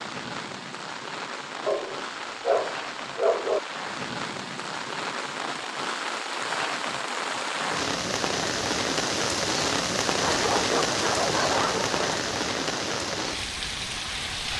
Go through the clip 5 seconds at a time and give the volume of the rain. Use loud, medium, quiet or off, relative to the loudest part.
medium, loud, loud.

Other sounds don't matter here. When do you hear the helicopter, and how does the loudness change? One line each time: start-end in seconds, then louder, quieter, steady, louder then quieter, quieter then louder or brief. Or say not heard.
not heard.